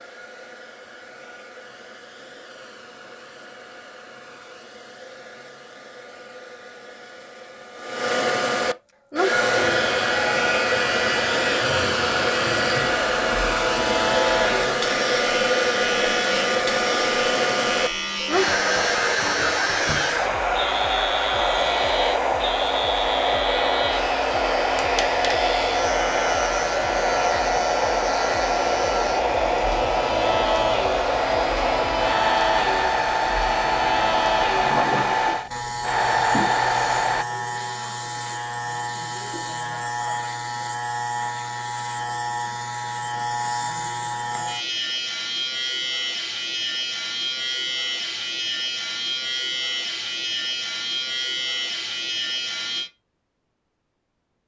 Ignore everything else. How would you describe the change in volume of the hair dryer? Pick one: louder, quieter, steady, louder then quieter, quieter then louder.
louder.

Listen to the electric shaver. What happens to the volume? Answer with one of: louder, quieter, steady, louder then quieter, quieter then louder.
steady.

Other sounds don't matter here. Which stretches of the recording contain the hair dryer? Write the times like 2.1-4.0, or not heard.
0.0-37.2.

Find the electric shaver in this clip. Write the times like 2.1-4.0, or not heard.
9.3-52.9.